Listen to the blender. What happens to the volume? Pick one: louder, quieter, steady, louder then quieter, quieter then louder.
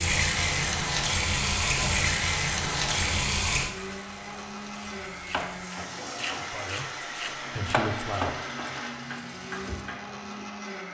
steady.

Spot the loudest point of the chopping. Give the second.
8 s.